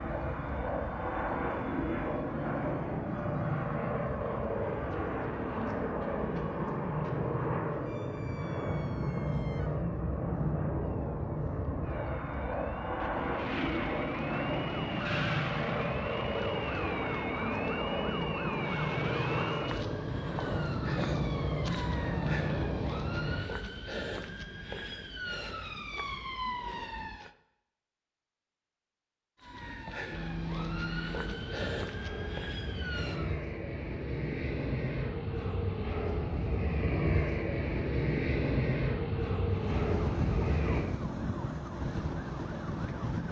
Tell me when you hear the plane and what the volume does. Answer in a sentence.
You can hear the plane from 0.0 to 23.4 s, at a steady volume; and from 30.1 to 40.9 s, getting louder.